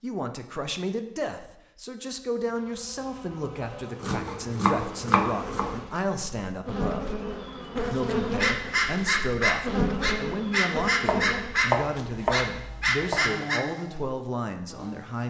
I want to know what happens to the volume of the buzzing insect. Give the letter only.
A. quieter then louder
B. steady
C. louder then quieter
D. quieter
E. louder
C.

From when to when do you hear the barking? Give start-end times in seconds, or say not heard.
8.3-13.6.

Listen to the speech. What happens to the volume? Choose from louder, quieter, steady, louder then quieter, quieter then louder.
steady.